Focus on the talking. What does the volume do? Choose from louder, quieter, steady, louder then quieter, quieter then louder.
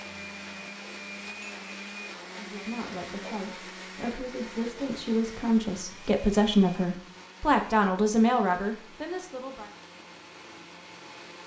louder.